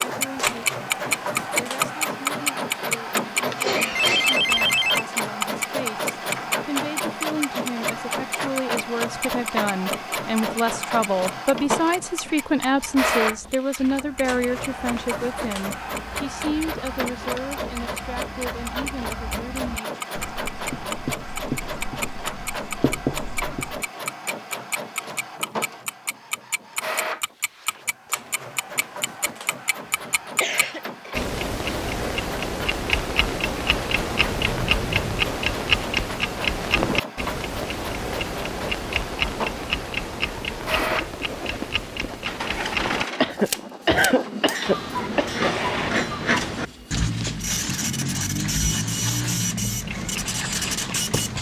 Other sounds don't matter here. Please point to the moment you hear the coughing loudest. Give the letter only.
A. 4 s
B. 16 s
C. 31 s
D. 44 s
D.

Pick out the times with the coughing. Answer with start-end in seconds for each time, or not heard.
3.5-4.5, 30.1-31.3, 43.2-45.5.